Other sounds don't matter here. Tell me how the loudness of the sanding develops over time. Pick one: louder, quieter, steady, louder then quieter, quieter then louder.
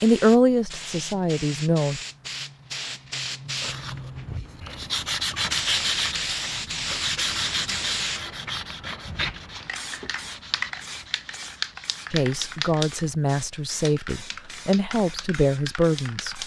quieter.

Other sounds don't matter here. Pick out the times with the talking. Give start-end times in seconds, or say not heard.
0.0-2.0, 12.1-16.4.